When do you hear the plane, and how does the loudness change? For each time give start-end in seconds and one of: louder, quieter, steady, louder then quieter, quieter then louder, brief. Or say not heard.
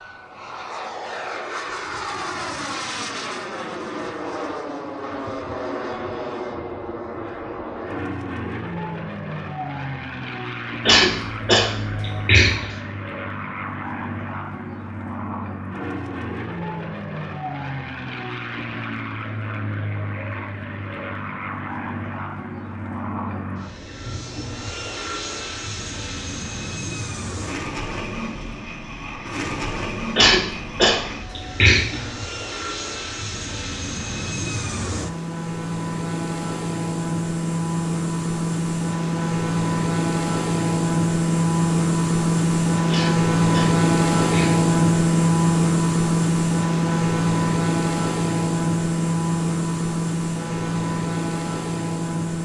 0.0-52.4 louder.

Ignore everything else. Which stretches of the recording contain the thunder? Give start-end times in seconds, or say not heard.
not heard.